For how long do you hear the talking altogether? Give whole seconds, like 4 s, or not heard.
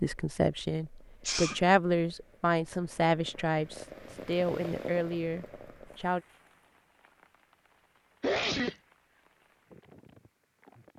6 s.